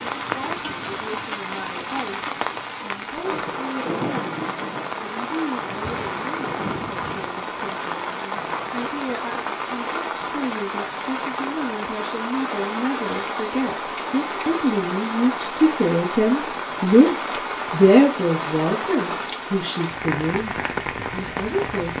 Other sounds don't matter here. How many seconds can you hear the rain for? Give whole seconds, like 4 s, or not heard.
22 s.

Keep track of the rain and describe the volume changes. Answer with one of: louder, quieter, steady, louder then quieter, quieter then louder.
steady.